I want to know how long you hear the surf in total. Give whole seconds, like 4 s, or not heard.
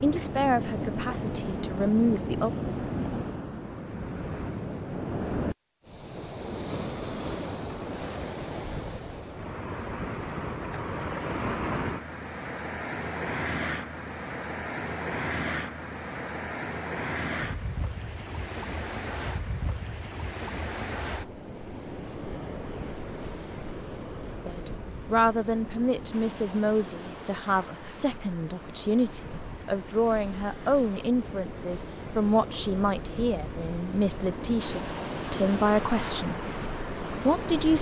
38 s.